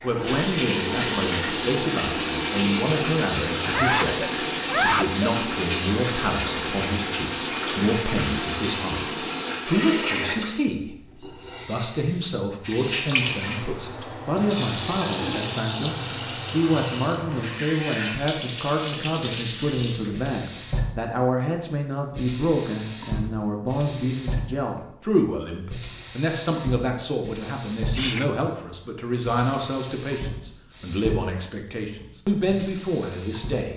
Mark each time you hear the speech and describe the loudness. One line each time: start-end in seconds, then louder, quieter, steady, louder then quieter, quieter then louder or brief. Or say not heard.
0.0-33.7 steady.